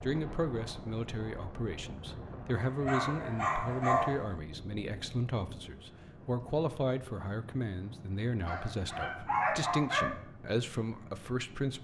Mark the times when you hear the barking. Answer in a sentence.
The barking can be heard from 2.5 to 4.3 s and from 8.4 to 10.2 s.